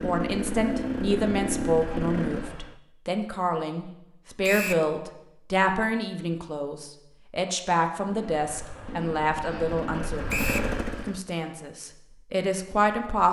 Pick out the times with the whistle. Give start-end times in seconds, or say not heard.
4.4-4.8, 10.2-10.7.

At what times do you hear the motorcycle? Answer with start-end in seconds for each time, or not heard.
0.0-2.8, 7.9-11.2.